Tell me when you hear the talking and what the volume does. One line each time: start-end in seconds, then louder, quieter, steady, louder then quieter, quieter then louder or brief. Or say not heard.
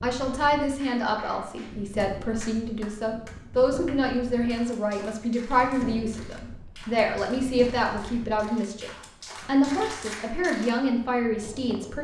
0.0-11.9 steady.